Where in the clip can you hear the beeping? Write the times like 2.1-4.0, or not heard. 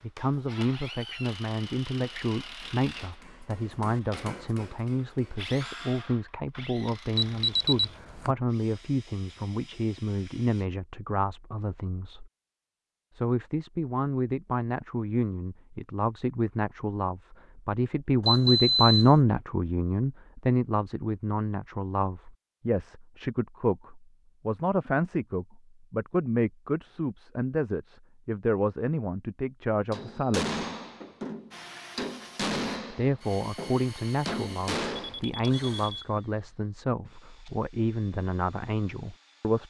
7.2-8.3, 18.2-19.1, 35.0-36.0.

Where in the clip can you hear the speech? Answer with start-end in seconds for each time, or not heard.
0.0-12.3, 13.2-30.6, 32.9-39.6.